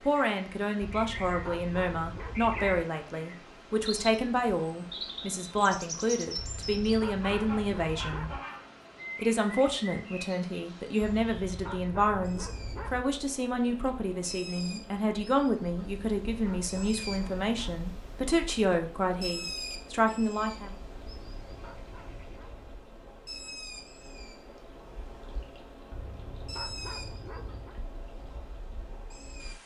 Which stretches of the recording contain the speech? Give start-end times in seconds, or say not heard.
0.0-8.3, 9.2-20.8.